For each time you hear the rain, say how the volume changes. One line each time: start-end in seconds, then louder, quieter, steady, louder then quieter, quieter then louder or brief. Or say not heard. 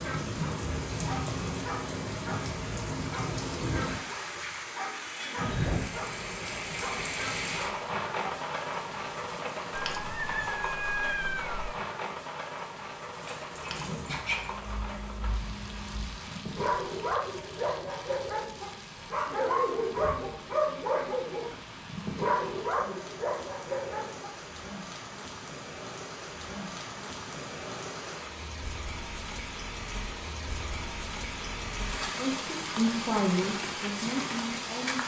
0.0-35.0 quieter then louder.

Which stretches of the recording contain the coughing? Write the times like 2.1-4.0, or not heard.
not heard.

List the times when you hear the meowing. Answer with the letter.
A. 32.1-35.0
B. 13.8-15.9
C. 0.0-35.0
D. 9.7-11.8
D.